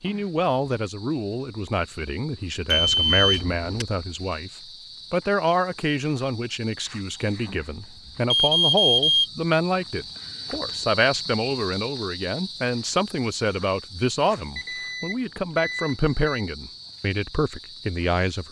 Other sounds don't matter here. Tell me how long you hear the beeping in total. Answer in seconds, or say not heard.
4 s.